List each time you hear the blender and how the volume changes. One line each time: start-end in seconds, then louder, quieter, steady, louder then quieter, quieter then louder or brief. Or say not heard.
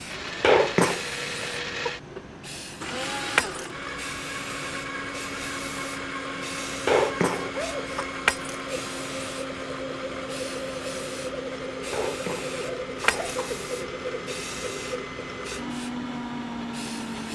0.0-17.3 steady.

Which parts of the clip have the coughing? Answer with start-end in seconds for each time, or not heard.
0.4-1.1, 6.8-8.1, 11.9-13.6.